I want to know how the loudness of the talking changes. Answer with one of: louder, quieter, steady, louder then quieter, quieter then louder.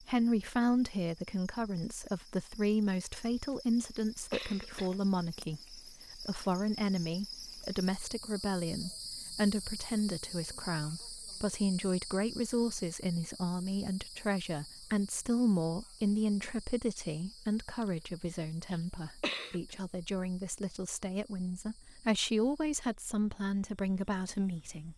steady.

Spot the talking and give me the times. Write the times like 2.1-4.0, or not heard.
0.0-24.9.